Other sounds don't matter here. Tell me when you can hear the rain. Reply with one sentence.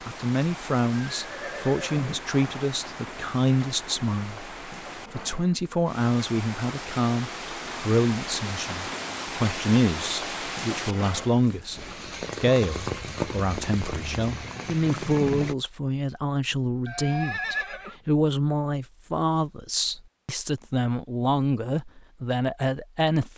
The rain can be heard from 0.0 to 15.6 s.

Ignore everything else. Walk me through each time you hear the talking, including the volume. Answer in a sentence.
You can hear the talking from 0.1 to 23.3 s, at a steady volume.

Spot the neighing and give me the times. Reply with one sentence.
The neighing can be heard from 0.9 to 2.7 s and from 16.9 to 17.9 s.